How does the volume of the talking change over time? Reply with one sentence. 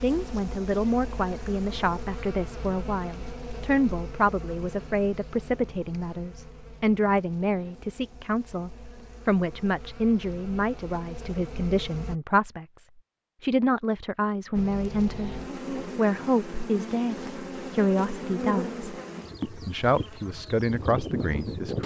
The volume of the talking stays about the same.